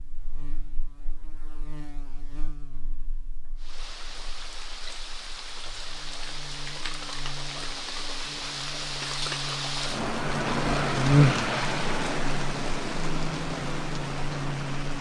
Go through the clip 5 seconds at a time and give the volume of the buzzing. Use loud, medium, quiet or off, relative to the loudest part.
quiet, quiet, loud.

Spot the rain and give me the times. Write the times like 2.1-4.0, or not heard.
3.5-14.9.